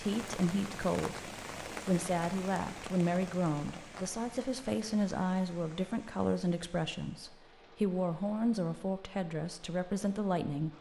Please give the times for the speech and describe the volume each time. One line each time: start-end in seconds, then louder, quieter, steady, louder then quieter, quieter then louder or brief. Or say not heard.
0.0-10.7 steady.